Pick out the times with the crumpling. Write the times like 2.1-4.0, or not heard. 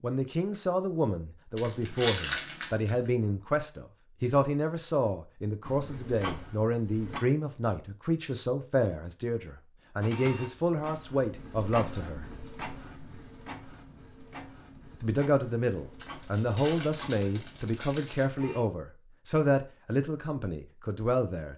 1.6-3.1, 15.9-18.2.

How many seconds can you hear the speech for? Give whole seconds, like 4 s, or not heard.
19 s.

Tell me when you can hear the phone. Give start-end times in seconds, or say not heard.
not heard.